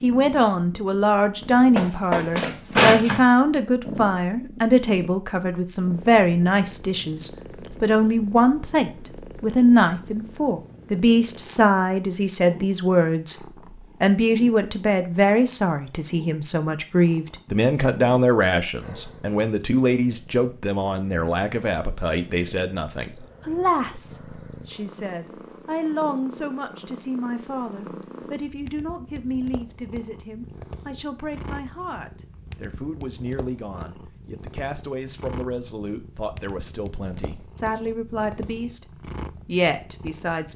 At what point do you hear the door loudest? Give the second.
3 s.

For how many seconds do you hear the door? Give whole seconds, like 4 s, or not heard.
2 s.